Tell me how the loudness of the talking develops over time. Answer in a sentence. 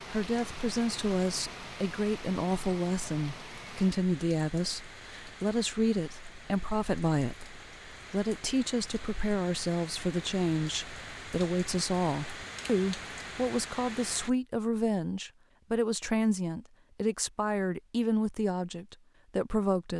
The loudness of the talking stays about the same.